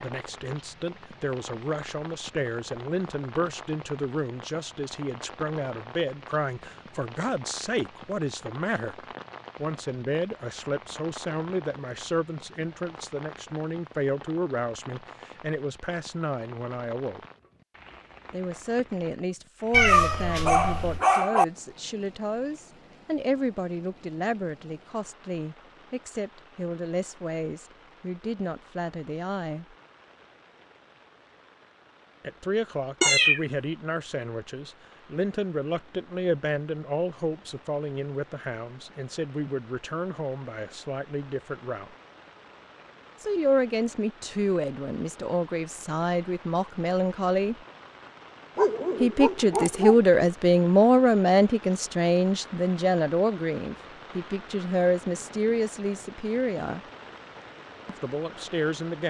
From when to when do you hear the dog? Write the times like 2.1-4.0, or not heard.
20.4-21.4, 48.5-50.2.